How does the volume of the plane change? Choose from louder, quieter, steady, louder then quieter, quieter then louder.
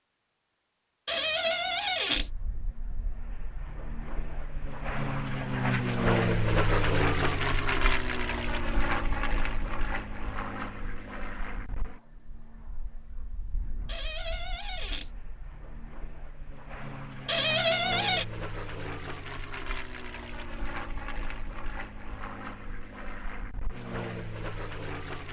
quieter then louder.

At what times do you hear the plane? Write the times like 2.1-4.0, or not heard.
2.1-25.2.